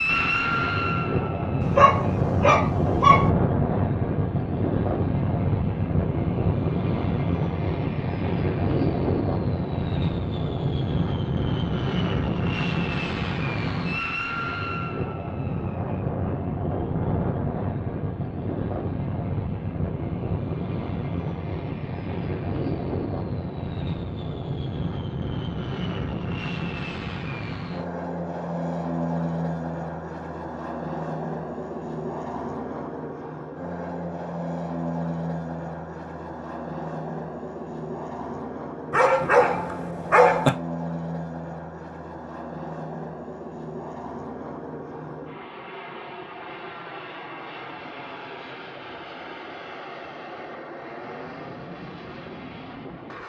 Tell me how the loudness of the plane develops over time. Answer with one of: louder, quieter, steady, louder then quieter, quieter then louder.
quieter.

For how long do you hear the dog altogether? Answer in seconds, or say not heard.
3 s.